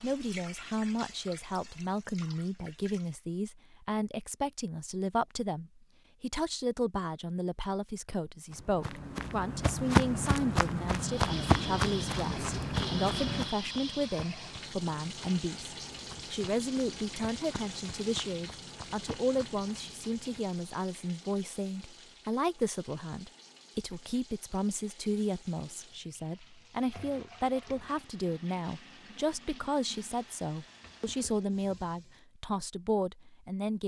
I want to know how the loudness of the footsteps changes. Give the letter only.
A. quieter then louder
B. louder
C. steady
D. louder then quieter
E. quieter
E.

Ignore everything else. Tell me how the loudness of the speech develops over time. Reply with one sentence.
The loudness of the speech stays about the same.